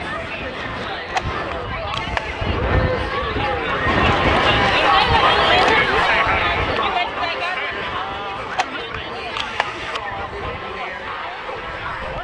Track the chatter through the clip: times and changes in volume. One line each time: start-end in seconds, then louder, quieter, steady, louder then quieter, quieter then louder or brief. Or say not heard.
0.0-12.1 louder then quieter.